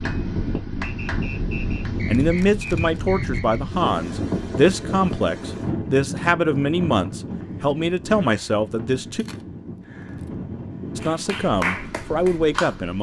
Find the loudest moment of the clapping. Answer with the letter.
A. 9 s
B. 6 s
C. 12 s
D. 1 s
C.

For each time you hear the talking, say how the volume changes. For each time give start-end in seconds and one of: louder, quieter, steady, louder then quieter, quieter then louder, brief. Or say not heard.
2.0-9.2 steady
10.9-12.9 brief.